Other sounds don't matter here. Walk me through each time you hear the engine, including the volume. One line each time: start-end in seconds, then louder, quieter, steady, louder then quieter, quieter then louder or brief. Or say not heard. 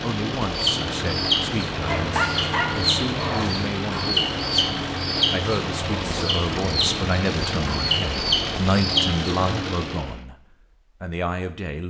0.0-10.2 steady.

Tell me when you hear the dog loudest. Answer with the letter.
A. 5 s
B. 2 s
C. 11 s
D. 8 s
B.